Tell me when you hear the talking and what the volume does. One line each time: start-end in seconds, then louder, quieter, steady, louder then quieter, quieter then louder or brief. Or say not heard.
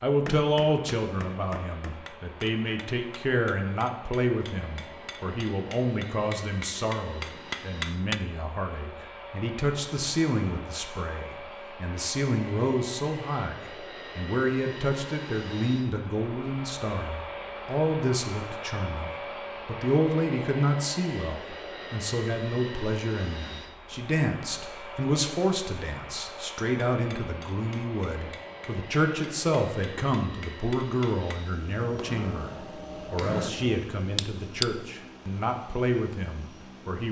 0.0-37.0 steady.